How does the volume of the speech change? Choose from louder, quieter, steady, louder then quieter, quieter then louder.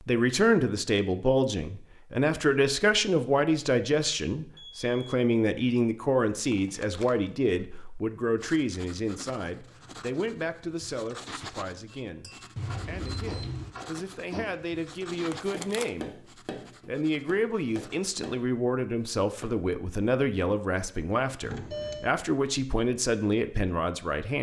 quieter then louder.